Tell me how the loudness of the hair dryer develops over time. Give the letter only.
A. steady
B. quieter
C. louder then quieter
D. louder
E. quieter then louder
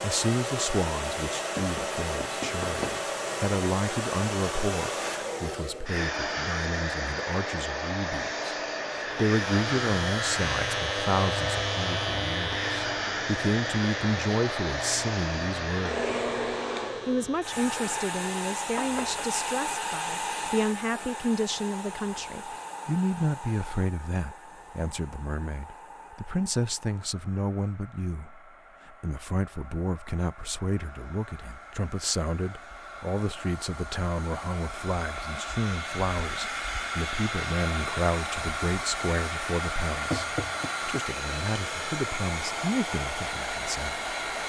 E.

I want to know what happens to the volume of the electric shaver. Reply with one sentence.
The loudness of the electric shaver goes down.